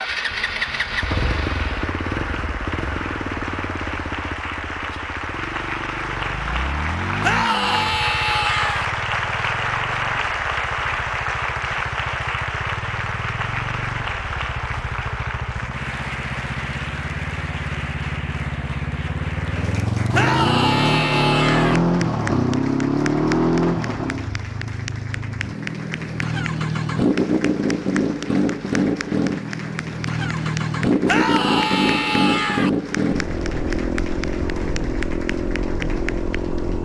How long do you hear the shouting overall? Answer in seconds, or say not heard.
5 s.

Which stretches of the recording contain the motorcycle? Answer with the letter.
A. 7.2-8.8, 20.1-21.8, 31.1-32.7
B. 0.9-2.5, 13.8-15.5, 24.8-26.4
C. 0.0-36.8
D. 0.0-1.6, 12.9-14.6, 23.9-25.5
C.